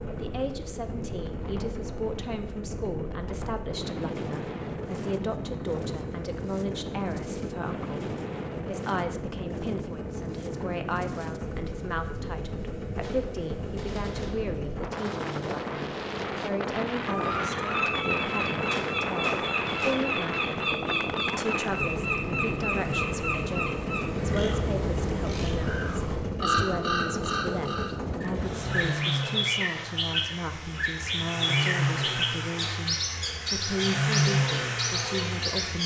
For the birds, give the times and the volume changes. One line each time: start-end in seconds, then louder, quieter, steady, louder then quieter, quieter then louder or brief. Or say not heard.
17.1-35.8 steady.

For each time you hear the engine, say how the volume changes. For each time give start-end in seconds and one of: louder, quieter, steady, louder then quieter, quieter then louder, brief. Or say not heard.
0.0-35.8 louder.